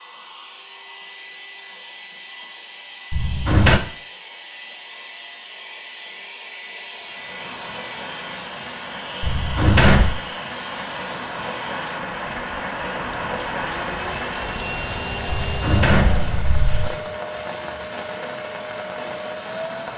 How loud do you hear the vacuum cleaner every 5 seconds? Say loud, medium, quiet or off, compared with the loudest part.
medium, loud, loud, loud.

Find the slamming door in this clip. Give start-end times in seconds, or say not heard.
3.1-3.8, 9.2-10.2, 15.2-16.9.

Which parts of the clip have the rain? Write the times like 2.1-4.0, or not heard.
7.0-19.9.